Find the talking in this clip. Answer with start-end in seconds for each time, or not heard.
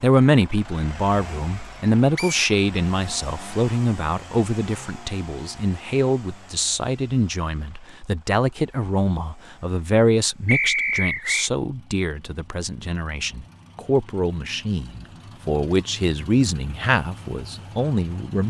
0.0-18.4.